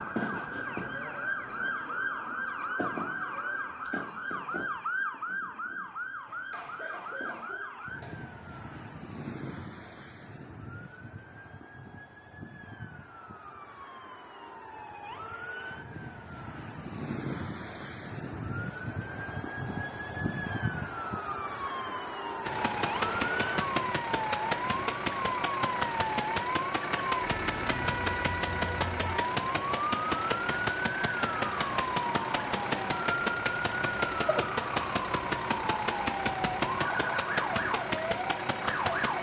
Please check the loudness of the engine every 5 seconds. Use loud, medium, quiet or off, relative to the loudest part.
off, off, off, off, loud, loud, loud, loud.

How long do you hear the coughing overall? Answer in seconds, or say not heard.
2 s.